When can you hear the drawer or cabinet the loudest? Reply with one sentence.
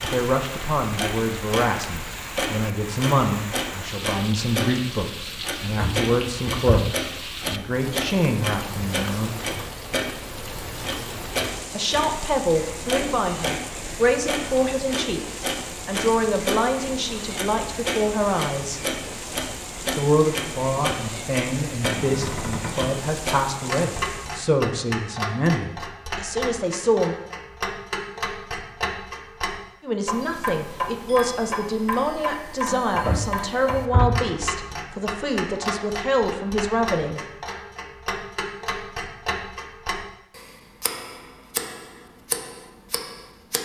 The loudest moment of the drawer or cabinet is at 34 seconds.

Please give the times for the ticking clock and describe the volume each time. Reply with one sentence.
The ticking clock can be heard from 0.0 to 43.6 s, at a steady volume.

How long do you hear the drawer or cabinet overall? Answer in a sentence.
You can hear the drawer or cabinet for 4 seconds altogether.